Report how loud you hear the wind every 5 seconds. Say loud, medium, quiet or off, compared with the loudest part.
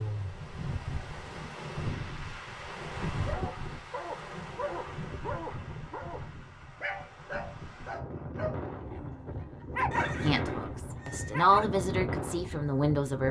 loud, medium, loud.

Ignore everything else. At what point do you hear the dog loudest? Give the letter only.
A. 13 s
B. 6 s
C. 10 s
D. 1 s
C.